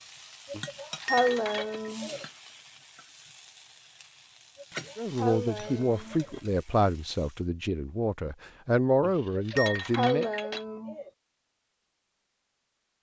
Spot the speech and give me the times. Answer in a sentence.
You can hear the speech from 5.0 to 10.3 s.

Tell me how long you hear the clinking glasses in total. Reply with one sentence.
You can hear the clinking glasses for 4 seconds altogether.